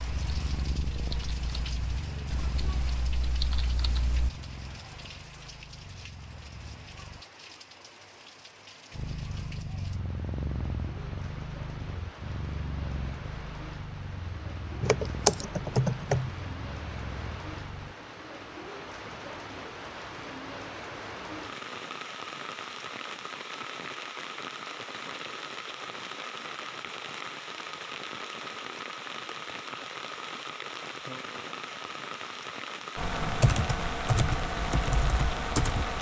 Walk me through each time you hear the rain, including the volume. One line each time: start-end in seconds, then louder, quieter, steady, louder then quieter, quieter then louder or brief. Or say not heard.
0.0-35.9 louder.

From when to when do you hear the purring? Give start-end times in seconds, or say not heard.
0.0-7.2, 8.9-17.9.